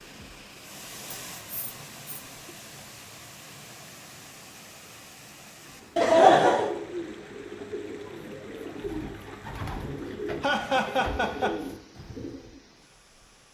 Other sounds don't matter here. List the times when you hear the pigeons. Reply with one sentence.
The pigeons can be heard from 5.7 to 12.6 s.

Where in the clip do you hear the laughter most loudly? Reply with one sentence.
The loudest moment of the laughter is at 6 seconds.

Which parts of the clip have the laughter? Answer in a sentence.
The laughter can be heard from 1.4 to 2.2 s, from 6.0 to 6.7 s and from 10.4 to 11.6 s.